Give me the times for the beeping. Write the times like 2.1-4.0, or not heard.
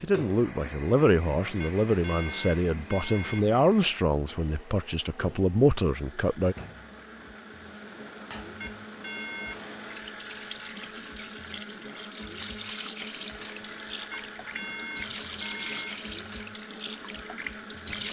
1.6-3.5, 8.6-9.8, 14.1-16.0.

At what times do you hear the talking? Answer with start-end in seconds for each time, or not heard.
0.0-6.5.